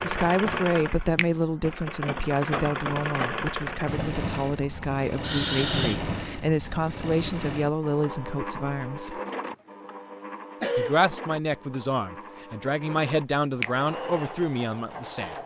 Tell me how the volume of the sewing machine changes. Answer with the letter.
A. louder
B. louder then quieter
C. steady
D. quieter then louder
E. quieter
E.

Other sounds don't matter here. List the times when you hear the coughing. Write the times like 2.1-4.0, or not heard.
5.2-6.0, 10.6-11.1.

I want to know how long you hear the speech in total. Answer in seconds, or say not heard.
14 s.